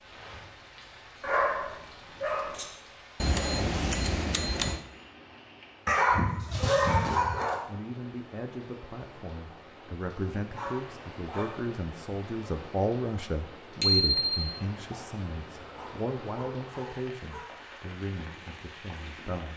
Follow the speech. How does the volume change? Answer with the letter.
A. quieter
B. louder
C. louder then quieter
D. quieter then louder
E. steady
C.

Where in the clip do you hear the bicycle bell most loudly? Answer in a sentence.
The volume of the bicycle bell peaks at 14 seconds.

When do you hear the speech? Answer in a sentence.
The speech can be heard from 7.7 to 19.5 s.